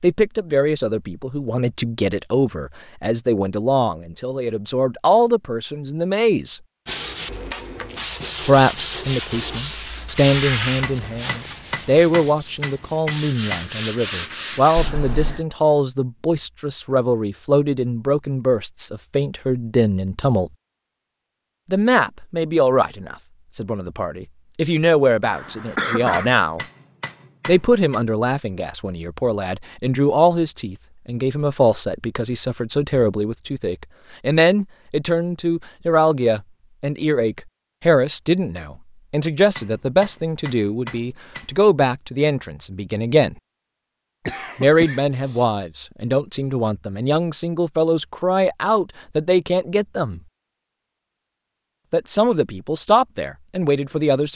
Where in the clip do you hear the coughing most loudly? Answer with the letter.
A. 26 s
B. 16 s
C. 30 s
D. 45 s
A.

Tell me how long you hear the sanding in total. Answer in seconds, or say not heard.
8 s.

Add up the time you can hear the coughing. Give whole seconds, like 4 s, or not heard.
3 s.